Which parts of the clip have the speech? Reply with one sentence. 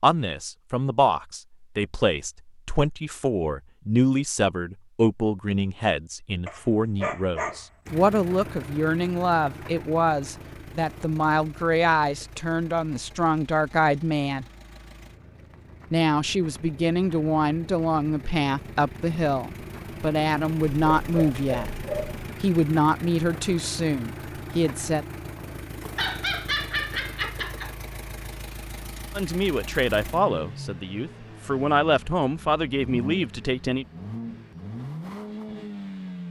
The speech can be heard from 0.0 to 14.4 s, from 15.9 to 21.7 s, from 22.4 to 25.1 s and from 29.1 to 33.9 s.